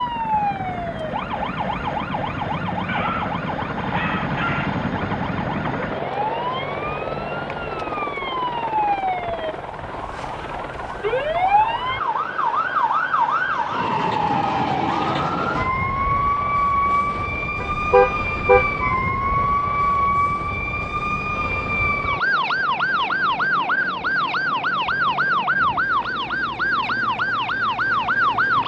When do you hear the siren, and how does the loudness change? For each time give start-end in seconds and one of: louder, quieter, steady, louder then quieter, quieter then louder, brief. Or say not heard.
0.0-28.6 louder.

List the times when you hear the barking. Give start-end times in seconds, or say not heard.
2.9-4.8.